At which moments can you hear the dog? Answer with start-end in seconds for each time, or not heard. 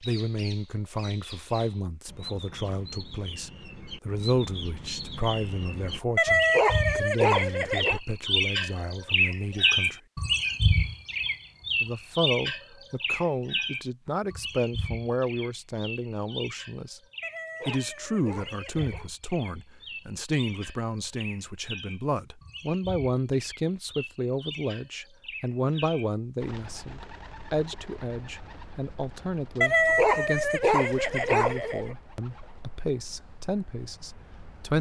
6.2-8.0, 17.2-19.1, 29.6-31.9.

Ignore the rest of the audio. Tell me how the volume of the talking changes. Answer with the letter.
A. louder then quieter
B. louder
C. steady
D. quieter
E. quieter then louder
C.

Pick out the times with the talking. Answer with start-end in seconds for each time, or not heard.
0.0-10.0, 11.8-17.0, 17.6-34.7.